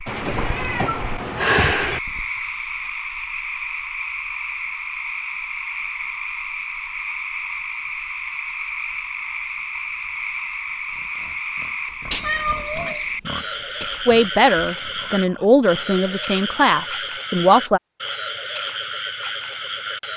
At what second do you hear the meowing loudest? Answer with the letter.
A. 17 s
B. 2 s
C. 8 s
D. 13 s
B.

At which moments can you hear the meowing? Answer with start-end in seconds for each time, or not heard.
0.1-2.0, 12.1-13.1.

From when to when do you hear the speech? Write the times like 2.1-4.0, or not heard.
14.1-17.8.